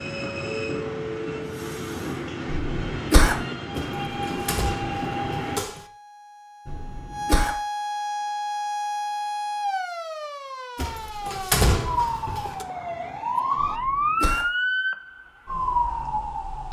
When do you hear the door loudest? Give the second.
12 s.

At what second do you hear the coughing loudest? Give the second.
3 s.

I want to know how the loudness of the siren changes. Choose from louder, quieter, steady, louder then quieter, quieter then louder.
louder.